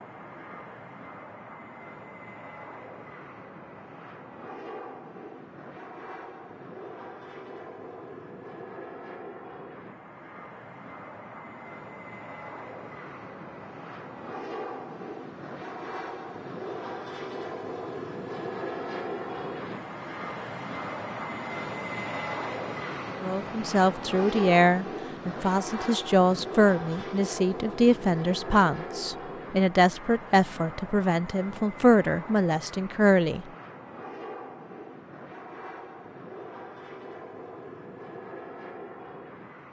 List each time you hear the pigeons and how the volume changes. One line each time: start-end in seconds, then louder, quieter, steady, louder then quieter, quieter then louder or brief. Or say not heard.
not heard.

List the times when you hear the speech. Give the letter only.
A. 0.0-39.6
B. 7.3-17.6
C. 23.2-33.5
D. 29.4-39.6
C.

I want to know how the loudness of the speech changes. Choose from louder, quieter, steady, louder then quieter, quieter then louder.
steady.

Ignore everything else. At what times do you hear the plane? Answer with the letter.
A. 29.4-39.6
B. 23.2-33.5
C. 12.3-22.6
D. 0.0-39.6
D.